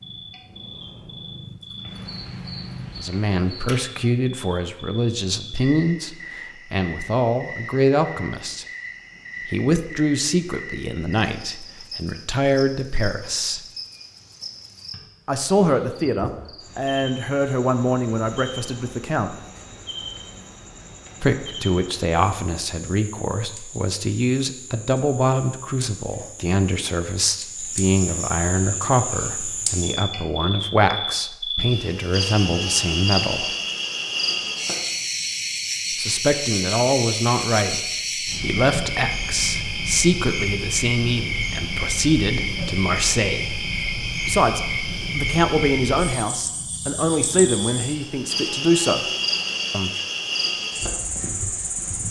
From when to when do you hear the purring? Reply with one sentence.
You can hear the purring from 0.0 to 3.0 s.